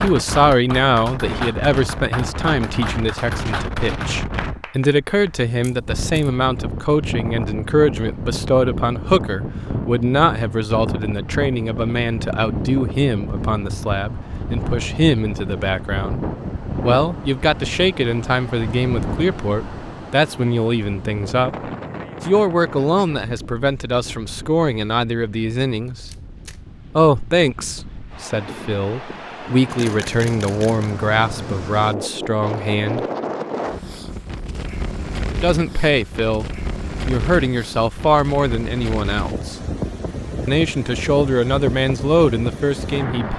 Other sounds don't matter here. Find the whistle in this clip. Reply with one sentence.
The whistle can't be heard in this clip.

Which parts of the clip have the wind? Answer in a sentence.
The wind can be heard from 0.0 to 43.3 s.